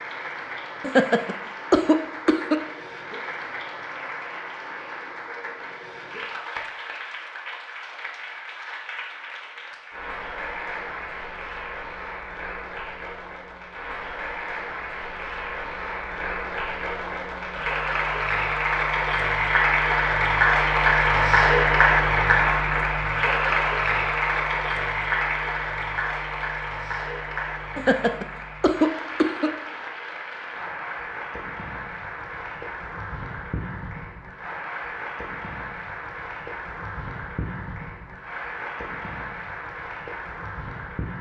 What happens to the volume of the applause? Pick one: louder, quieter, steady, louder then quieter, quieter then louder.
louder then quieter.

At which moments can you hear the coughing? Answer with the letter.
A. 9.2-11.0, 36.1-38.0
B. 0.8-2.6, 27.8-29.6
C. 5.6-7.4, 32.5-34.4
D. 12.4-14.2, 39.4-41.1
B.